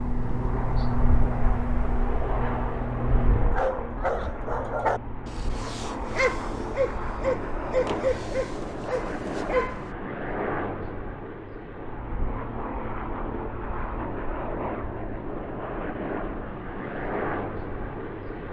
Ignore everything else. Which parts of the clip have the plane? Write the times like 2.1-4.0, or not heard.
0.0-18.4.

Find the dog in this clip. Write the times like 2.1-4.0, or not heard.
3.5-9.9.